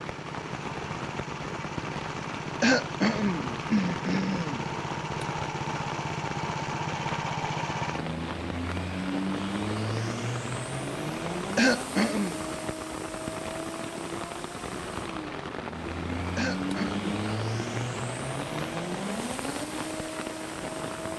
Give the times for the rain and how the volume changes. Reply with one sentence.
The rain can be heard from 0.0 to 21.1 s, at a steady volume.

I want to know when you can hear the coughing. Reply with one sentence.
You can hear the coughing from 2.6 to 4.7 s, from 11.6 to 12.3 s and from 16.4 to 17.1 s.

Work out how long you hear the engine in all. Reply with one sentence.
You can hear the engine for 21 seconds altogether.